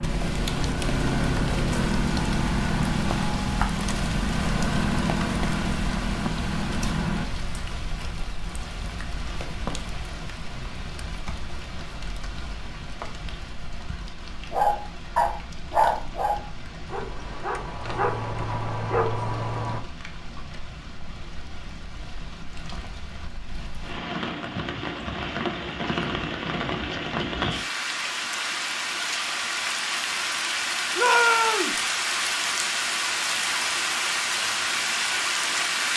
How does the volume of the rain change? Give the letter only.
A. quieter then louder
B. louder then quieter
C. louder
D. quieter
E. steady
A.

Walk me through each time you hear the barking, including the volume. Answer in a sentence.
The barking can be heard from 14.5 to 19.8 s, getting quieter then louder.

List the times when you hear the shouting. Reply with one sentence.
You can hear the shouting from 30.9 to 31.8 s.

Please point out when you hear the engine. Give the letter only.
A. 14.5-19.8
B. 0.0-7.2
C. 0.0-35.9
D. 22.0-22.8
B.